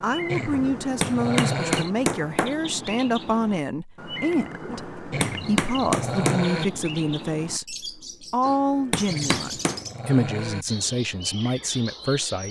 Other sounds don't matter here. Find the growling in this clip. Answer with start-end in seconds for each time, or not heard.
0.2-1.9, 5.1-6.7, 9.1-10.7.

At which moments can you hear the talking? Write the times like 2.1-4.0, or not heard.
0.0-12.4.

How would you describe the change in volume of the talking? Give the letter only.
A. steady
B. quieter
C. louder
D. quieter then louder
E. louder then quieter
A.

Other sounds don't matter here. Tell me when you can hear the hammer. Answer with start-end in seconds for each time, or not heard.
0.5-2.5, 4.7-6.5, 8.4-9.8.